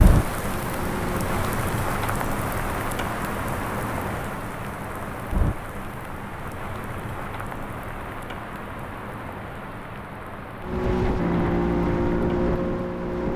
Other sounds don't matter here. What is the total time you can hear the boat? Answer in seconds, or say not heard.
4 s.